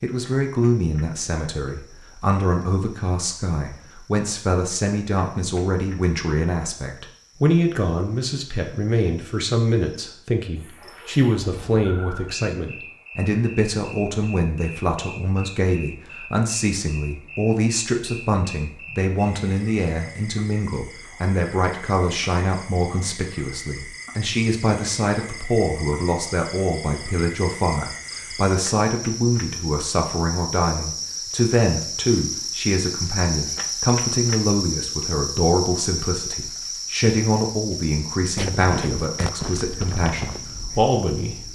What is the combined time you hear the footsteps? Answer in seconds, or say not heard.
3 s.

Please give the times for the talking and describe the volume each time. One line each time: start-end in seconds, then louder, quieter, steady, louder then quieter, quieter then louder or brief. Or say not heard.
0.0-41.4 steady.